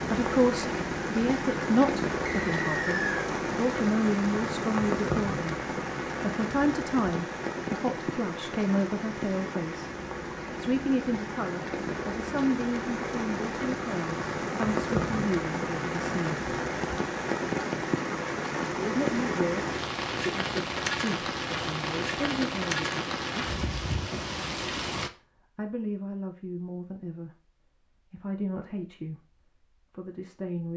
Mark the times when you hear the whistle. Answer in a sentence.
You can hear the whistle from 2.2 to 3.2 s.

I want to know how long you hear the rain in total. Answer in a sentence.
You can hear the rain for 25 seconds altogether.